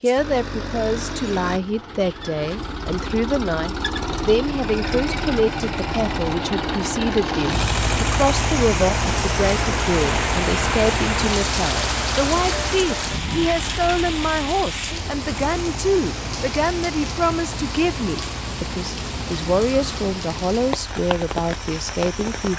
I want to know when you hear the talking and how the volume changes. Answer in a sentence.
The talking can be heard from 0.0 to 22.5 s, at a steady volume.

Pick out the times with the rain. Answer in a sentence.
The rain can be heard from 7.0 to 22.5 s.